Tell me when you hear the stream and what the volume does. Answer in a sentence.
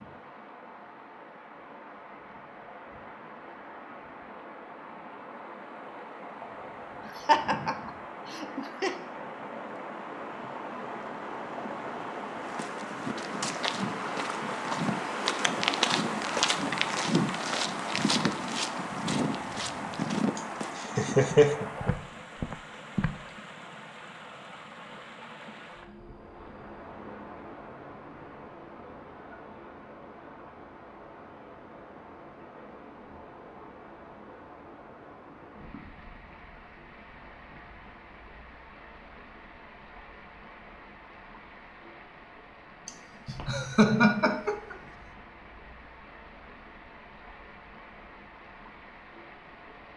You can hear the stream from 0.0 to 49.9 s, getting louder then quieter.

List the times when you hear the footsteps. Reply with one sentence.
The footsteps can be heard from 12.4 to 23.1 s.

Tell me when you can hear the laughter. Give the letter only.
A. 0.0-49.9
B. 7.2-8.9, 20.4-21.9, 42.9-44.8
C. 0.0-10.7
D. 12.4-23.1
B.